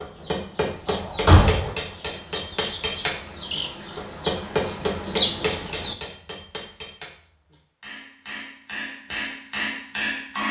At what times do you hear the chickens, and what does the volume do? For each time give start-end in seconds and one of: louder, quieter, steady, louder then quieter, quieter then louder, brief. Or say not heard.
0.1-6.0 louder.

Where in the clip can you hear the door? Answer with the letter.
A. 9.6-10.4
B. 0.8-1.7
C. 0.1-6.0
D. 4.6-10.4
B.